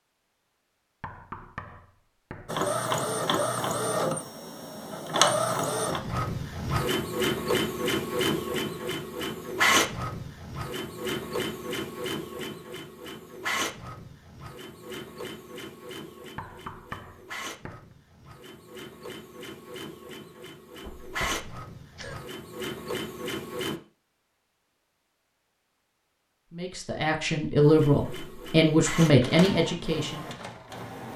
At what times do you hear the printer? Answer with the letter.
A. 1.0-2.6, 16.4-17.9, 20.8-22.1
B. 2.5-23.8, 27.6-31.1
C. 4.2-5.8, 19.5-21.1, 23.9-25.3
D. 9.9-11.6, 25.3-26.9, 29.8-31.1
B.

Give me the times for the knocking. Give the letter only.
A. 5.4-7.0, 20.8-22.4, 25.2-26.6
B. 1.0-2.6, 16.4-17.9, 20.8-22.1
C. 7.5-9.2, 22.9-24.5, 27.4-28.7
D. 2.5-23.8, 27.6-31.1
B.